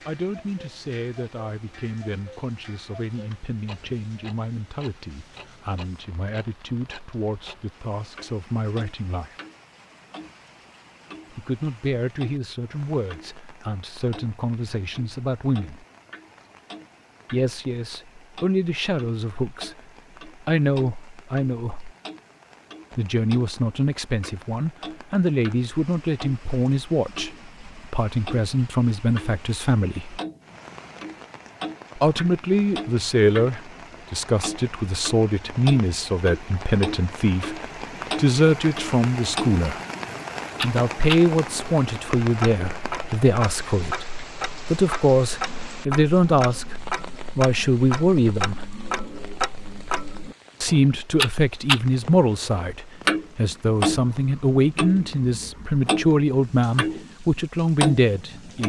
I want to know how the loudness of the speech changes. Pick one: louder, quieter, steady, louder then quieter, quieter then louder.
louder.